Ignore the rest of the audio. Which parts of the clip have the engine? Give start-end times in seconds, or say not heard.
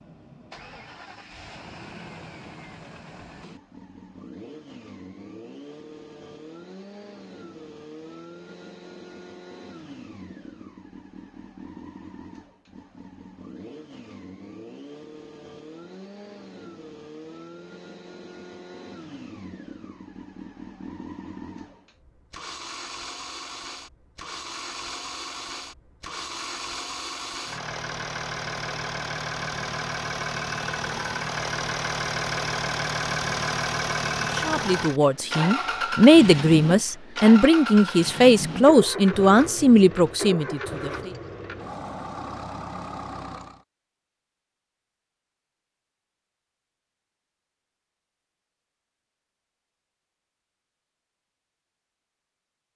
0.0-43.6.